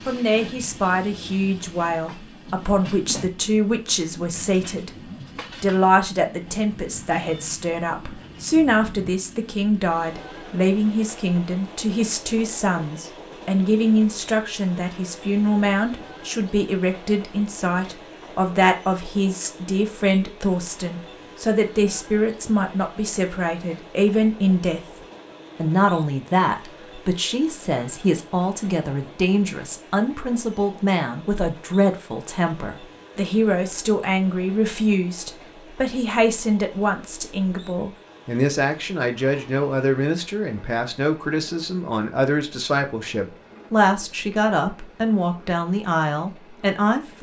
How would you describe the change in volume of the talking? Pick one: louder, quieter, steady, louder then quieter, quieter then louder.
steady.